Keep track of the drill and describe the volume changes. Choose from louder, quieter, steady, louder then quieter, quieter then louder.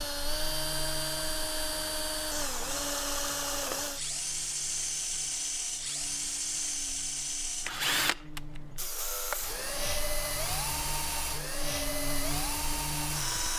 steady.